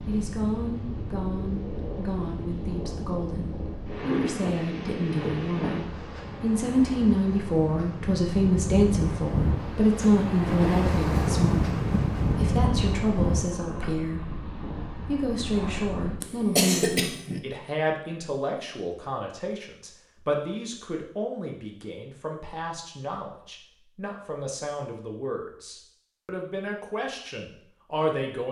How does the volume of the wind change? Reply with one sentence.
The loudness of the wind goes up, then down.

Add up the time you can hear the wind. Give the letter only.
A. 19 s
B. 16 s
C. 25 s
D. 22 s
B.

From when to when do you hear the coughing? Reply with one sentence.
The coughing can be heard from 16.2 to 17.4 s.